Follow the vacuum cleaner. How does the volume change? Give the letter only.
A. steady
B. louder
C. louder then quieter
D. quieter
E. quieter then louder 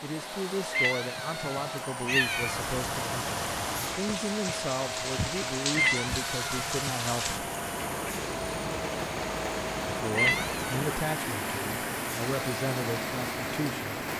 A.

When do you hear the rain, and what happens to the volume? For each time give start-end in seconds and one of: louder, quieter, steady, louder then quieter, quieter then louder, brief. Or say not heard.
2.1-14.1 steady.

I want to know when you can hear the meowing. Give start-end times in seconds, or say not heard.
0.7-2.6, 5.7-6.7, 10.2-10.8.